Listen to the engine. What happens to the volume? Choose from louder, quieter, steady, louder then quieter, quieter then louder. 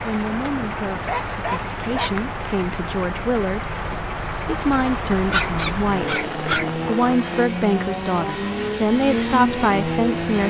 louder.